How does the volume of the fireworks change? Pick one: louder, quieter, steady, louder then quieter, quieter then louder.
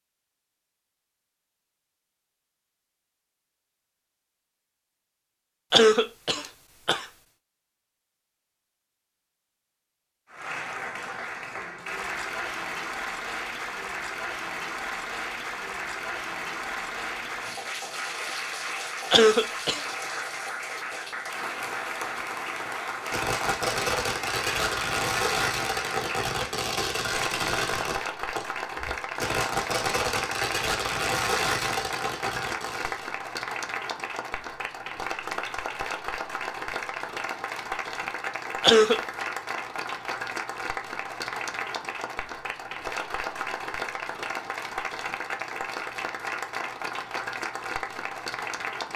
steady.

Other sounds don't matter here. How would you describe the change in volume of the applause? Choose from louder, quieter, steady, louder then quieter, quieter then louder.
steady.